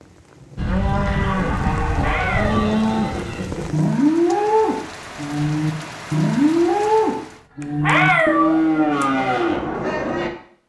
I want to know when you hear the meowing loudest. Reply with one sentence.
The loudest moment of the meowing is at 8 seconds.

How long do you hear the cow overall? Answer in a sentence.
You can hear the cow for 10 seconds altogether.